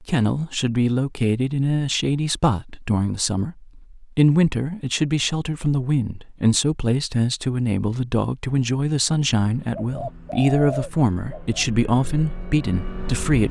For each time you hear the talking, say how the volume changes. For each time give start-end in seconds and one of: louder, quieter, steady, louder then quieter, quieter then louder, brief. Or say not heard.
0.0-13.4 steady.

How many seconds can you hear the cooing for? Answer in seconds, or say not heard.
2 s.